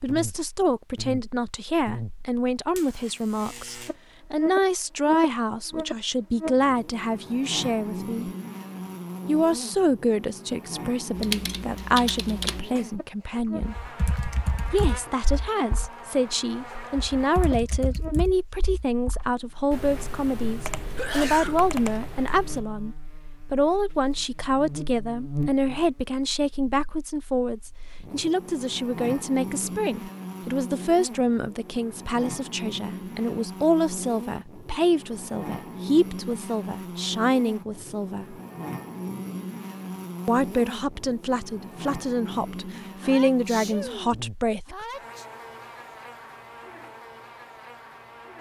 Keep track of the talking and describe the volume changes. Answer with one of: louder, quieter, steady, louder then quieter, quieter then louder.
steady.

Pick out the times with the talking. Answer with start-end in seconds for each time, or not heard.
0.0-8.3, 9.2-13.8, 14.7-38.4, 40.2-44.8.